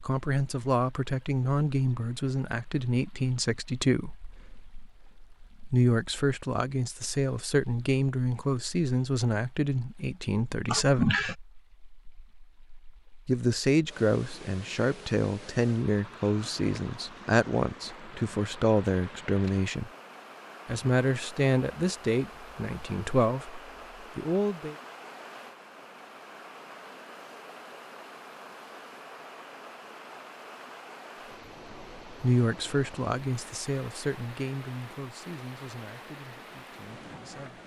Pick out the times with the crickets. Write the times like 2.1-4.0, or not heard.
not heard.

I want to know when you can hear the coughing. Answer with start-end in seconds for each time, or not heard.
10.7-11.3.